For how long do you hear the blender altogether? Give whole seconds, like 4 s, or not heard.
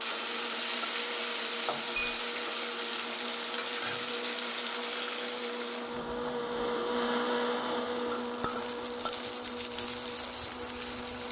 11 s.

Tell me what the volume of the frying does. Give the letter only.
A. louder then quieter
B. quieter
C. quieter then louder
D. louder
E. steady
C.